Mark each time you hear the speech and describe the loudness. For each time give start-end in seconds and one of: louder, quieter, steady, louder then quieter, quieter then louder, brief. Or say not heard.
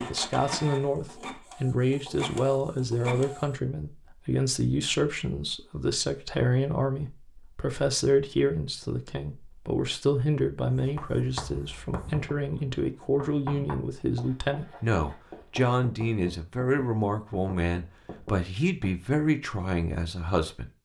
0.0-20.7 steady.